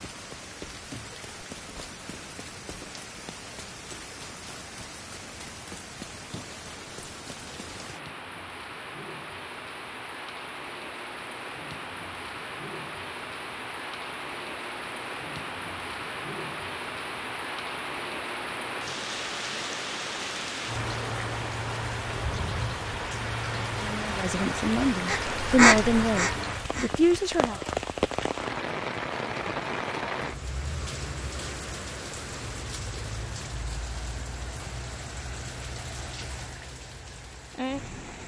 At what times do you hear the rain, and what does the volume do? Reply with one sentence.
The rain can be heard from 0.0 to 38.2 s, getting louder then quieter.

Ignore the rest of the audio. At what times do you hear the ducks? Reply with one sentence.
The ducks can be heard from 25.1 to 27.1 s.